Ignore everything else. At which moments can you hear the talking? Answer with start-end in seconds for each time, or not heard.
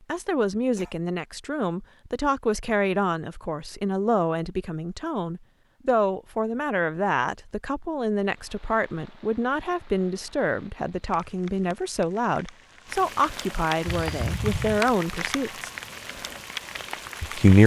0.1-15.7, 17.2-17.6.